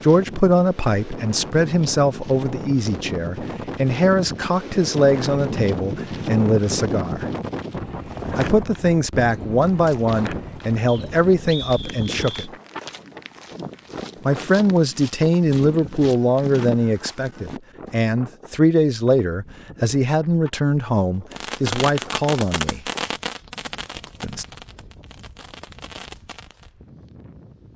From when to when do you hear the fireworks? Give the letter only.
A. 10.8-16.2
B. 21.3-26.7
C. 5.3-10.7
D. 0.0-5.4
B.